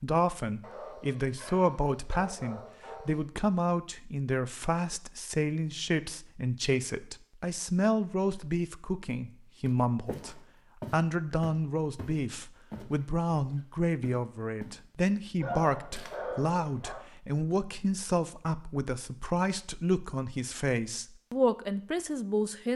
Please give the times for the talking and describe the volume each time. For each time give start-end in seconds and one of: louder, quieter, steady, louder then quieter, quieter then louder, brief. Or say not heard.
0.0-22.7 steady.